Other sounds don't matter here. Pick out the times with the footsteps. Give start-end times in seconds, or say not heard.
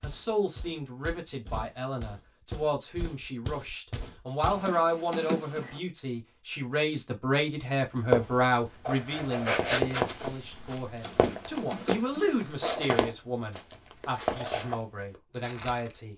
0.0-4.7, 8.1-15.9.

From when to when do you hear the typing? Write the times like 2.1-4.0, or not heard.
4.4-5.8, 11.0-12.3.